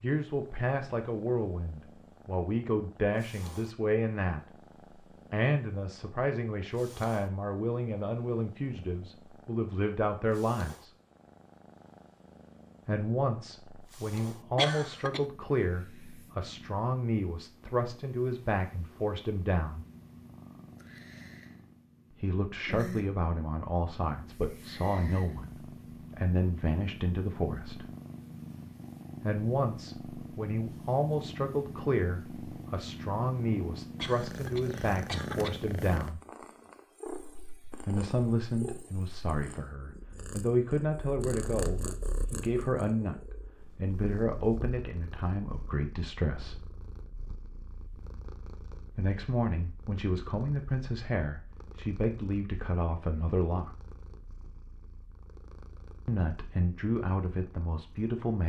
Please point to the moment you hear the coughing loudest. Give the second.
15 s.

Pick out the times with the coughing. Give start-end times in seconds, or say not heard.
14.6-15.2, 34.0-35.5.